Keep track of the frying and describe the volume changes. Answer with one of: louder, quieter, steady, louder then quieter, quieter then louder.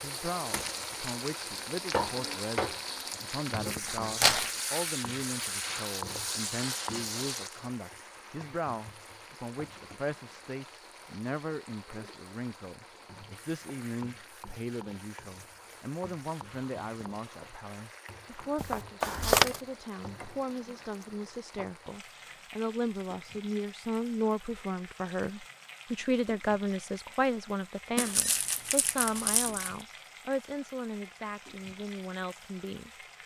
quieter.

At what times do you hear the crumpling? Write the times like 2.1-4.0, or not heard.
3.8-4.5, 18.6-19.6, 27.9-29.7.